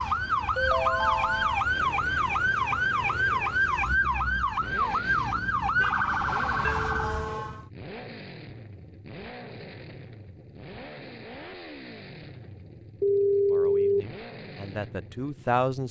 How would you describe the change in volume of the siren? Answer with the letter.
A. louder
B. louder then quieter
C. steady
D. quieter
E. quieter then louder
C.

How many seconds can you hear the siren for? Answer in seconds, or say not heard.
8 s.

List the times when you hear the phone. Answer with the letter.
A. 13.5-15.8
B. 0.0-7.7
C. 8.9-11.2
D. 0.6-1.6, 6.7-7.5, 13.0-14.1
D.